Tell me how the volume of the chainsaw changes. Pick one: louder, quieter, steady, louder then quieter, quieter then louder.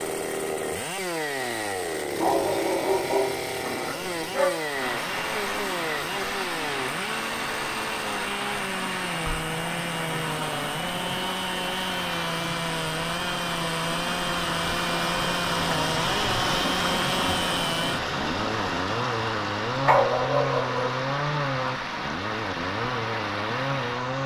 steady.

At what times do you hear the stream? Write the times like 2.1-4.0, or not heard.
4.5-24.2.